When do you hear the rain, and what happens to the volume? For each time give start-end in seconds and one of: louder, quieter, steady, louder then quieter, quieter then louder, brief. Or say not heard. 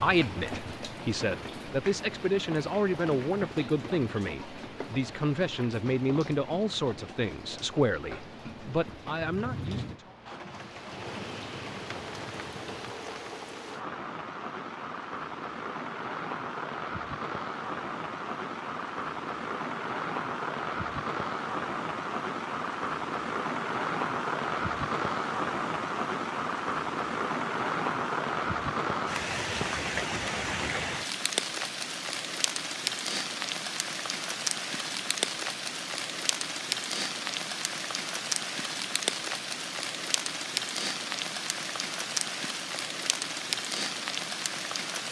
0.0-45.0 louder.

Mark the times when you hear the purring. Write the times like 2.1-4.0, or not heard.
not heard.